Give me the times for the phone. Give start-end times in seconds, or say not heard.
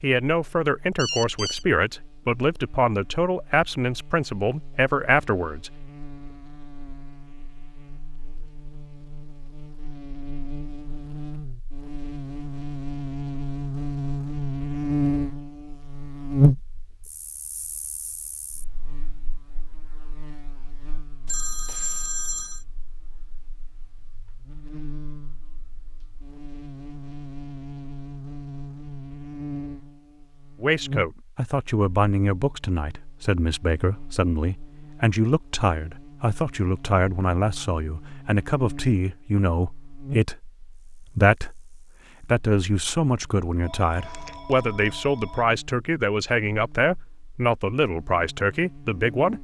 0.9-1.6, 21.2-22.6, 43.5-45.5.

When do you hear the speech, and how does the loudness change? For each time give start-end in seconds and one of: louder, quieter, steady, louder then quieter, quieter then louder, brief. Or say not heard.
0.0-5.7 steady
30.6-49.4 steady.